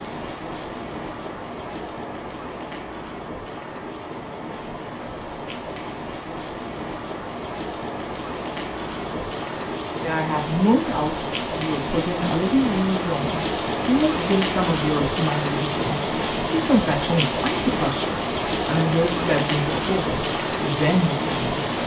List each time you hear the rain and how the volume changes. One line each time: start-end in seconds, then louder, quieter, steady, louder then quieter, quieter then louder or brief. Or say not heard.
0.0-21.8 louder.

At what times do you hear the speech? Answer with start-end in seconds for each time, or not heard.
10.0-21.8.